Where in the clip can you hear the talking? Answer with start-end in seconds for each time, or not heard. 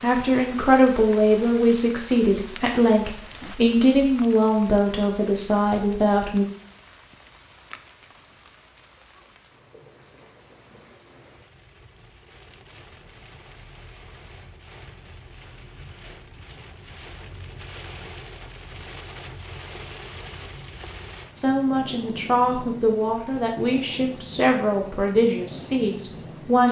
0.0-6.5, 21.4-26.6.